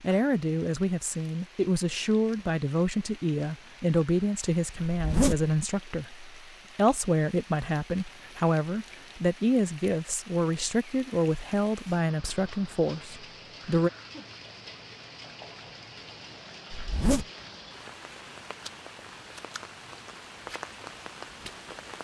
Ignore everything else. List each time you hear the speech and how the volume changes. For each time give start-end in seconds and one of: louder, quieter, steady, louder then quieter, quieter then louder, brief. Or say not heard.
0.0-13.9 steady.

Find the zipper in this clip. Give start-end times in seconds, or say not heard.
4.8-5.5, 16.7-17.2.